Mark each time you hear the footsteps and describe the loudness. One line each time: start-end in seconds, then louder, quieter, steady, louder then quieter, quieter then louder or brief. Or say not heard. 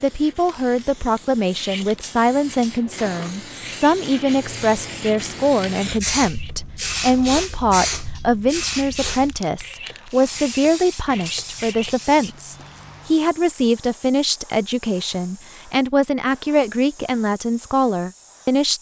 not heard.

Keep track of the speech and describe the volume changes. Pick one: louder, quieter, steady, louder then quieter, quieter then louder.
steady.